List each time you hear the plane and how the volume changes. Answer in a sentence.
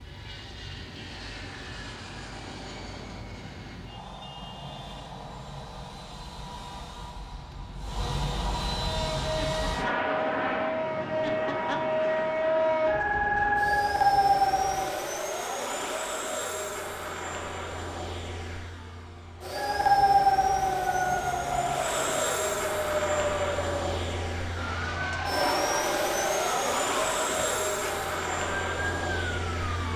The plane can be heard from 0.0 to 29.9 s, getting louder.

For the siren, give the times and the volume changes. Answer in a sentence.
The siren can be heard from 8.8 to 15.1 s, getting louder; and from 19.5 to 29.9 s, getting quieter.